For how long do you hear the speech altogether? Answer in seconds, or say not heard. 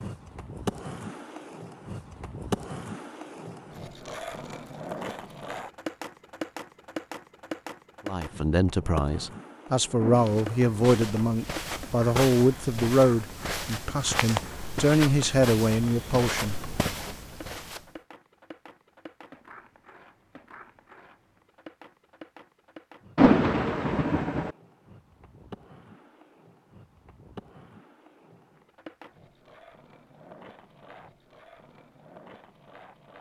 9 s.